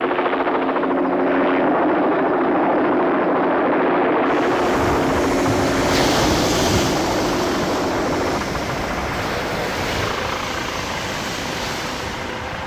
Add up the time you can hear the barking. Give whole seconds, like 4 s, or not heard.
not heard.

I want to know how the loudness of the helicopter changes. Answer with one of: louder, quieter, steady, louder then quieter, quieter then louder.
quieter.